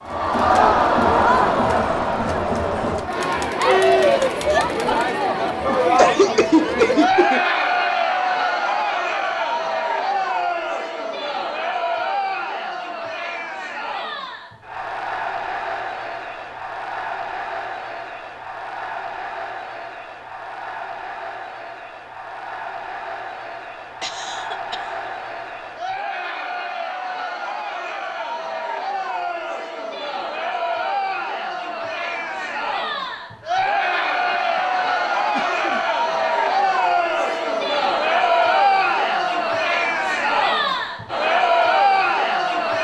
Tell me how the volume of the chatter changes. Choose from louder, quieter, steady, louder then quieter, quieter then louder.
quieter then louder.